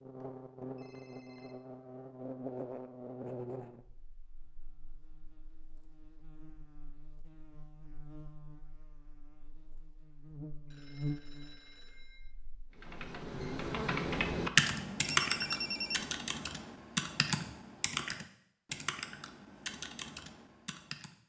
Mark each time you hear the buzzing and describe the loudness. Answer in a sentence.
The buzzing can be heard from 0.0 to 13.9 s, getting quieter then louder.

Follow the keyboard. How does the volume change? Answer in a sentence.
The volume of the keyboard goes down.